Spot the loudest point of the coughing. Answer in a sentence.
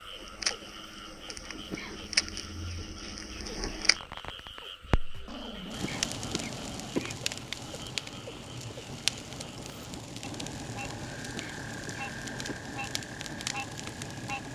The loudest moment of the coughing is at 7 seconds.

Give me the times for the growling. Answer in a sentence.
You can hear the growling from 5.1 to 7.0 s.